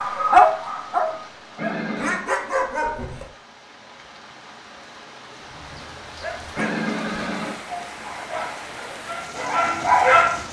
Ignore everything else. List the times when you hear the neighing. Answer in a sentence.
The neighing can be heard from 1.6 to 2.2 s and from 6.5 to 7.5 s.